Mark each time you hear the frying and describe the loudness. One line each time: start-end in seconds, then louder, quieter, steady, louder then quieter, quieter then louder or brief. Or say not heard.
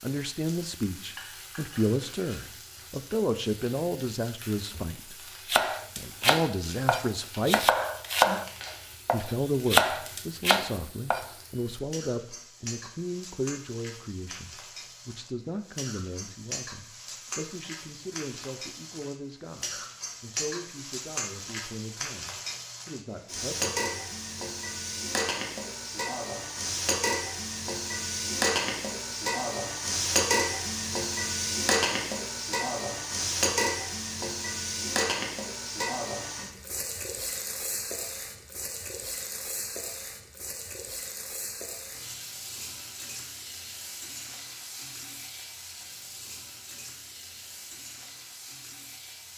0.0-49.3 louder then quieter.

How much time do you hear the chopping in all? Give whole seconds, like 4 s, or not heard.
6 s.